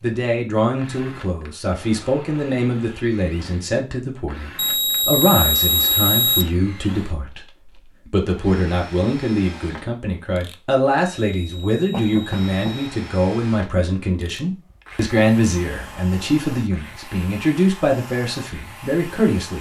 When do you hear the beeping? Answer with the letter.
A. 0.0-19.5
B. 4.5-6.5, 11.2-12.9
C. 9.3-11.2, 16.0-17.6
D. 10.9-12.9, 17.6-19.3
B.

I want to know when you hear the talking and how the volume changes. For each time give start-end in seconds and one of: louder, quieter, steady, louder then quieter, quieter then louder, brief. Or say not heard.
0.0-19.5 steady.